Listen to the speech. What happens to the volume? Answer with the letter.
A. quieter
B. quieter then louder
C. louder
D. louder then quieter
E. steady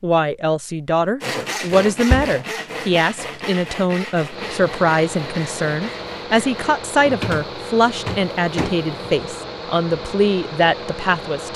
E.